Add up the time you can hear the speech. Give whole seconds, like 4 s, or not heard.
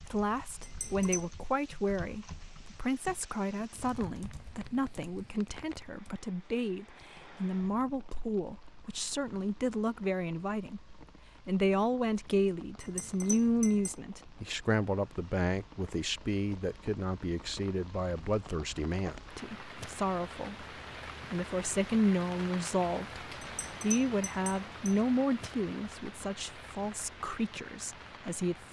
28 s.